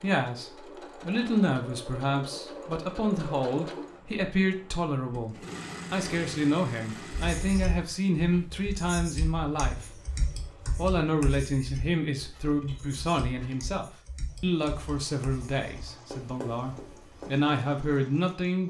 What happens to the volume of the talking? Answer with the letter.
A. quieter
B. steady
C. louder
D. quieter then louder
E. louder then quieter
B.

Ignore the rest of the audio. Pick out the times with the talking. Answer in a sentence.
You can hear the talking from 0.0 to 10.0 s and from 10.8 to 18.6 s.